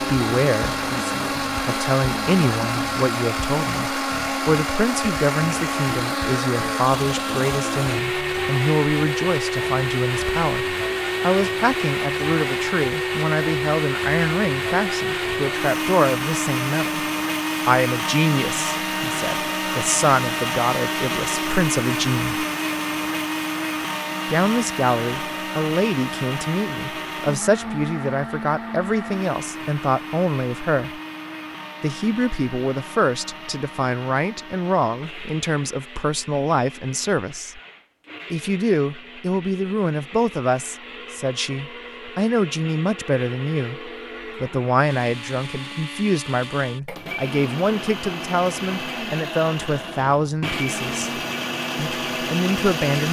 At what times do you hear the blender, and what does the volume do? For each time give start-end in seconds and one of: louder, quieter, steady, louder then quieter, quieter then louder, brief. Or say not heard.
0.0-53.0 quieter then louder.